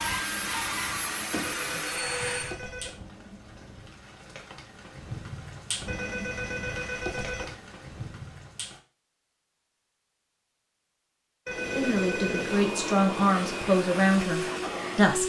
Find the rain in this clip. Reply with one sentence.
You can hear the rain from 0.0 to 8.8 s.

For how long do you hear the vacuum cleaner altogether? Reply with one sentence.
You can hear the vacuum cleaner for 6 seconds altogether.